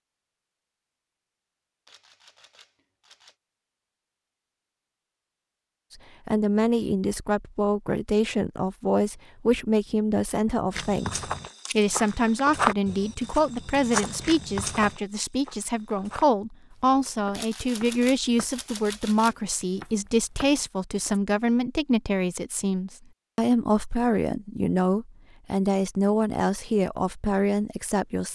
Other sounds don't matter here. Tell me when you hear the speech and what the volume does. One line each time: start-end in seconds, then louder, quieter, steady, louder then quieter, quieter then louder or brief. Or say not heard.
6.2-28.2 steady.